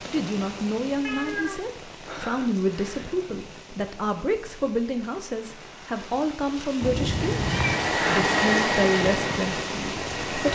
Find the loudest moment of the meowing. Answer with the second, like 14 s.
8 s.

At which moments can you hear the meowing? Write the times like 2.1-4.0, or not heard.
1.0-3.0, 6.8-8.2.